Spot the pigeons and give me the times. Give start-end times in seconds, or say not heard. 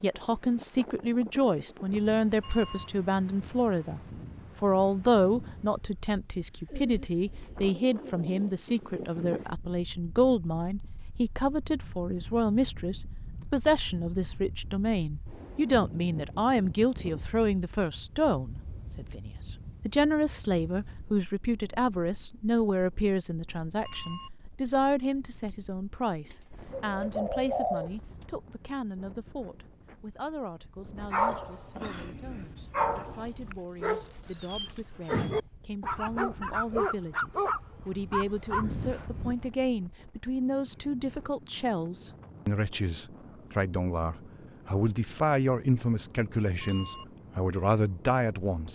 6.7-8.5, 26.2-28.2, 33.2-35.2.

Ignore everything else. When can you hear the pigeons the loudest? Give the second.
28 s.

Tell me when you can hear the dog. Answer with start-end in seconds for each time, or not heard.
30.9-39.4.